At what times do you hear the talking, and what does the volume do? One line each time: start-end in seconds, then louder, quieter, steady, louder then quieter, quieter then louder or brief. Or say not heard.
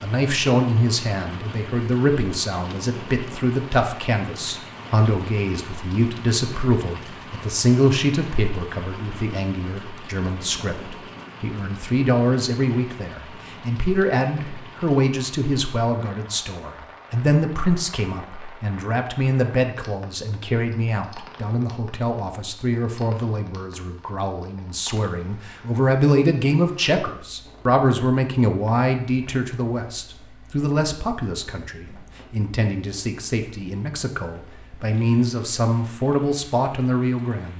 0.0-37.5 steady.